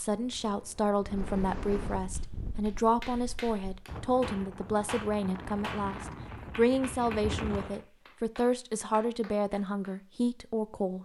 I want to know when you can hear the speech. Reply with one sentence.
The speech can be heard from 0.0 to 11.0 s.